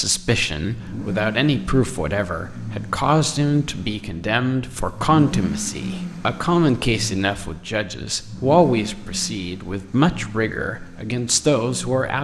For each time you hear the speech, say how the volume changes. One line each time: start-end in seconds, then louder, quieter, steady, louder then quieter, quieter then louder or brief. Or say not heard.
0.0-12.1 steady.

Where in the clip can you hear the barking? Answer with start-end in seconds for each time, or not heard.
not heard.